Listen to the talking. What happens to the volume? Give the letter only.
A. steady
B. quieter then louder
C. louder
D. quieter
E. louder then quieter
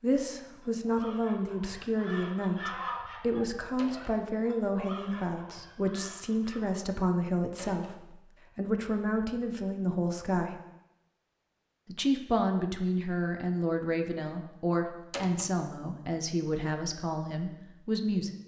A.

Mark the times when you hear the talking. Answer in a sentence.
You can hear the talking from 0.0 to 10.6 s and from 11.8 to 18.3 s.